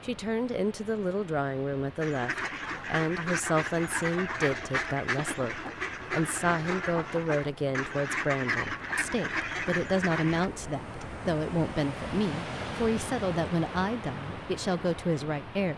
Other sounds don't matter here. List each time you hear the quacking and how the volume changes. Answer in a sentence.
The quacking can be heard from 2.0 to 10.5 s, at a steady volume.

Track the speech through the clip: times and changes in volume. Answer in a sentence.
The speech can be heard from 0.0 to 15.7 s, at a steady volume.